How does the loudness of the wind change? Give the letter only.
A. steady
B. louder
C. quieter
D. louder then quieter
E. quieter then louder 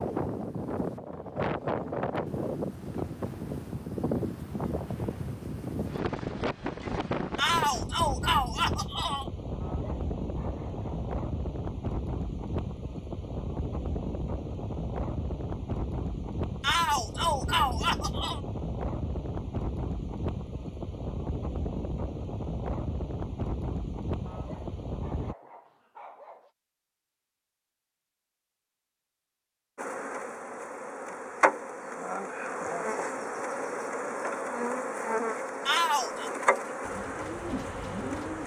A.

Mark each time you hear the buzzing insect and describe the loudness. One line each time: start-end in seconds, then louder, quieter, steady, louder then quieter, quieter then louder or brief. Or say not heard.
29.8-38.4 steady.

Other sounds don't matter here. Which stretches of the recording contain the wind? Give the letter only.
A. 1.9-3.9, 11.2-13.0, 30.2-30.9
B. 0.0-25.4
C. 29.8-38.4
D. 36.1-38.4
B.